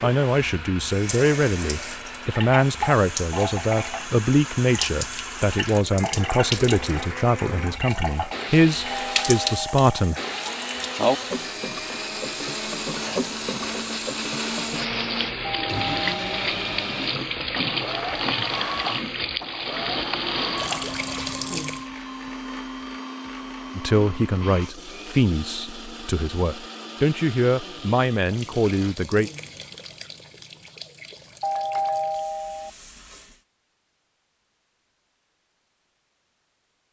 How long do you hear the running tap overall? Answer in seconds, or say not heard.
27 s.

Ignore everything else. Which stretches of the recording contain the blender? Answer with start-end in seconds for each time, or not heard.
0.0-28.9.